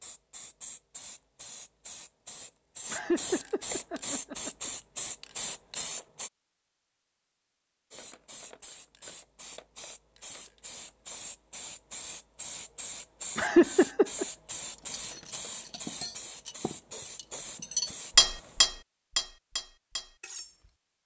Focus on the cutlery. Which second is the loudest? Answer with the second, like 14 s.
18 s.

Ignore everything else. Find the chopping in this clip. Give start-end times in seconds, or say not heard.
not heard.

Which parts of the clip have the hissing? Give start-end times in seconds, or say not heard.
0.0-6.3, 7.9-18.8.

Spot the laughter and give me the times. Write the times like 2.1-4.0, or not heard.
2.9-4.7, 13.3-14.2.